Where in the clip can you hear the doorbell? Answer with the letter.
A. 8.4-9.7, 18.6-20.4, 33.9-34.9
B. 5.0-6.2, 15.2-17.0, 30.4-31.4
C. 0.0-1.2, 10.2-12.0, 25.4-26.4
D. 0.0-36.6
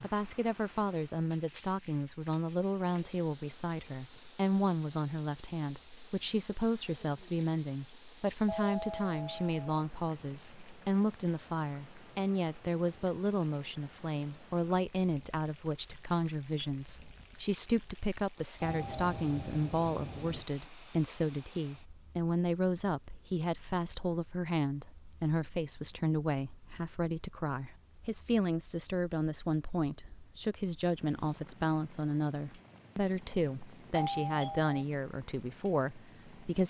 A.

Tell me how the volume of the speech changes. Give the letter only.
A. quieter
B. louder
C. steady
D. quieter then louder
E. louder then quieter
C.